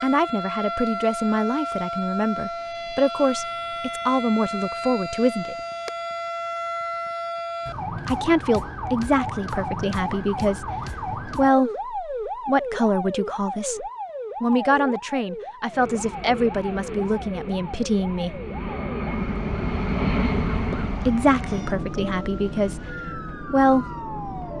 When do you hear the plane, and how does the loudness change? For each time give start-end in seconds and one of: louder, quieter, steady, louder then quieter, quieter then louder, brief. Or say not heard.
15.7-24.5 louder then quieter.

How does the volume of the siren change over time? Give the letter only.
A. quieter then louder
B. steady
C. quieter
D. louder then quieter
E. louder
C.